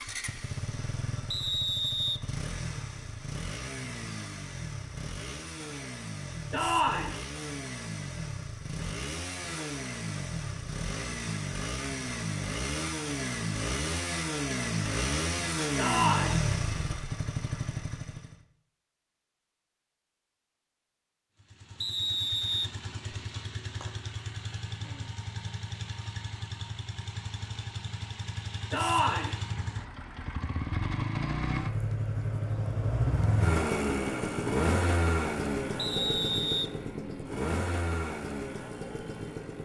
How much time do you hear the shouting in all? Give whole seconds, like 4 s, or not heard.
2 s.